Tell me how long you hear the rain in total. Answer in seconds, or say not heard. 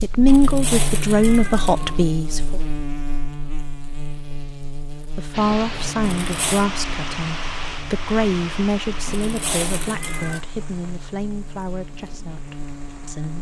8 s.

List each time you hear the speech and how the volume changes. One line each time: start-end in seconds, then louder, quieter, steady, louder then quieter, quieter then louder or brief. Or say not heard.
0.0-2.6 brief
5.2-13.3 quieter.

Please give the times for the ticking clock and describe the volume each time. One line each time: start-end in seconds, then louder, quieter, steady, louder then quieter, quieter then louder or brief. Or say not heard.
not heard.